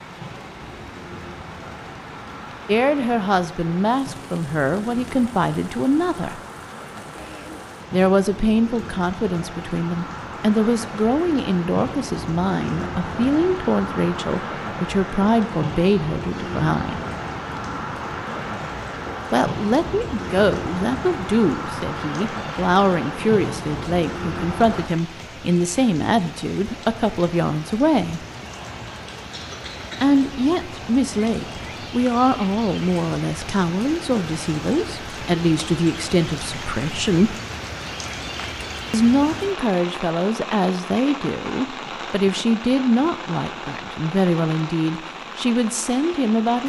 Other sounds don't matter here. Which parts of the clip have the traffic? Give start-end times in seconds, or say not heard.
0.0-24.9.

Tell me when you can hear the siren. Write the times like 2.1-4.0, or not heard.
not heard.